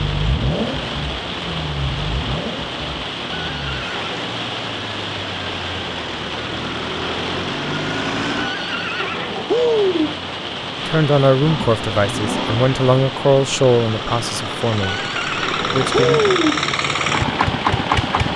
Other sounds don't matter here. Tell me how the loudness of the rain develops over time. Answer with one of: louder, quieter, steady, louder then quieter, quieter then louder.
steady.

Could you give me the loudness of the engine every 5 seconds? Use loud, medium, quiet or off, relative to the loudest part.
medium, medium, medium, loud.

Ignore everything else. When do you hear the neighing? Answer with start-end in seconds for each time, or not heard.
3.4-4.2, 8.3-10.2, 14.8-16.6.